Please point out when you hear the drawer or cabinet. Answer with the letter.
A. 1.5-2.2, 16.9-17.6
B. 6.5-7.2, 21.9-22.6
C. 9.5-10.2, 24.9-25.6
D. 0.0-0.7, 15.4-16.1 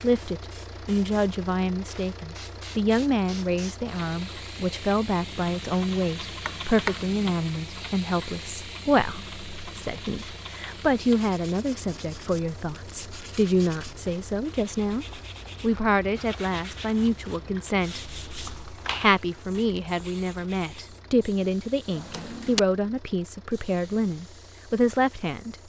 B.